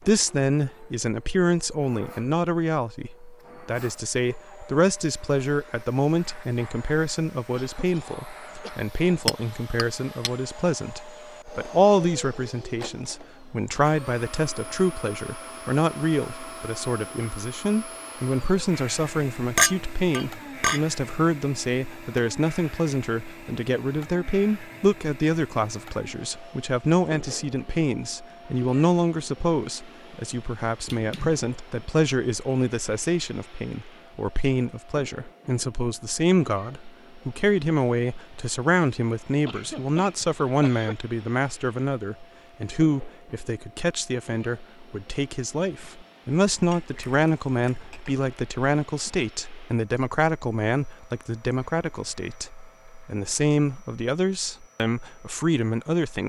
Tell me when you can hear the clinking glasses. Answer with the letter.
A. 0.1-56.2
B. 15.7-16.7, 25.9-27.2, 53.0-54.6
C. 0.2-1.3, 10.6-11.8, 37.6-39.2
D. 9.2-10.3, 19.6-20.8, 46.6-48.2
D.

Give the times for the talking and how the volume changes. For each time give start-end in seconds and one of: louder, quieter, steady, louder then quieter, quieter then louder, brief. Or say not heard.
0.1-56.2 steady.